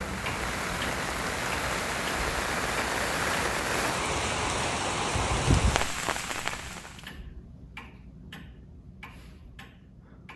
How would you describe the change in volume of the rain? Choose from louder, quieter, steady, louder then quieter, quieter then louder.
steady.